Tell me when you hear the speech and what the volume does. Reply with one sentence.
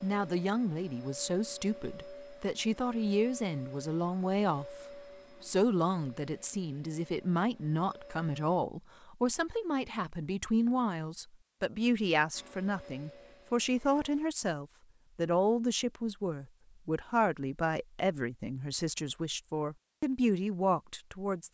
You can hear the speech from 0.0 to 21.4 s, at a steady volume.